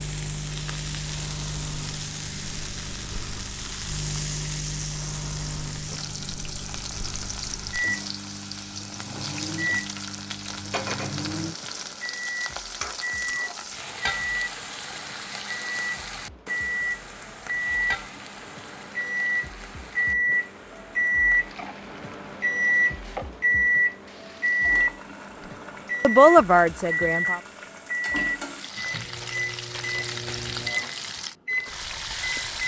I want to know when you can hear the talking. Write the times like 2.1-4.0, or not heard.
26.0-27.4.